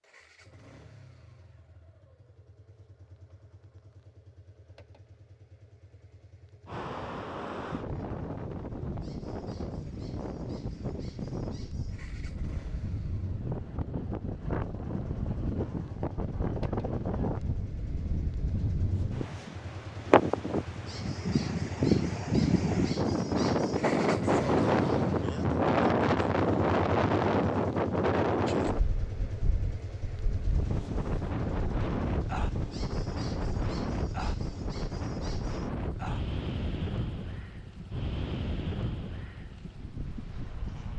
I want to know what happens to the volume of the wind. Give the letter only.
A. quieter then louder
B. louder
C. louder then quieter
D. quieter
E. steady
C.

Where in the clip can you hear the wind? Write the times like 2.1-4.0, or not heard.
6.7-40.9.